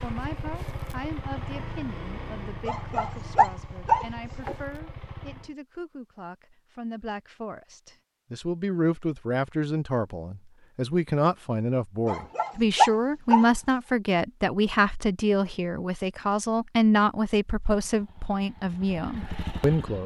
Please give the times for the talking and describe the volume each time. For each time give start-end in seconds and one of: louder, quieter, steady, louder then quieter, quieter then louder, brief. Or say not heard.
0.0-20.0 louder.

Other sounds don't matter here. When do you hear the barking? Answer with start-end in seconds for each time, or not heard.
2.6-4.5, 12.1-13.5.